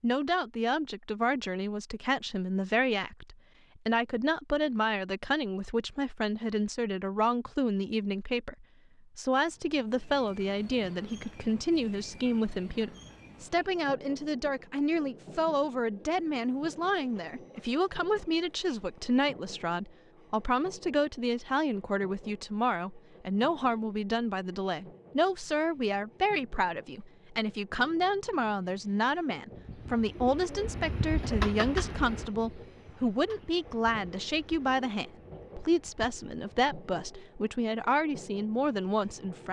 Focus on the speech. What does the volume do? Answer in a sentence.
The loudness of the speech stays about the same.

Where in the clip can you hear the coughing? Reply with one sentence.
The coughing can't be heard in this clip.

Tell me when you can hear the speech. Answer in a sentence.
You can hear the speech from 0.0 to 39.4 s.